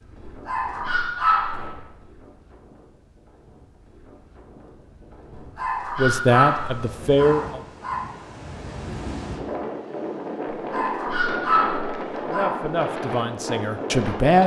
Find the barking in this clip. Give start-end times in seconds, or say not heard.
0.2-1.8, 5.3-8.1, 10.6-12.6.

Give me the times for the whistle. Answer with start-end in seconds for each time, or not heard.
not heard.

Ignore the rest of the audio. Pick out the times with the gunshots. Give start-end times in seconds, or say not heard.
1.5-1.9.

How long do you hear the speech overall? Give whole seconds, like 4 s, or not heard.
4 s.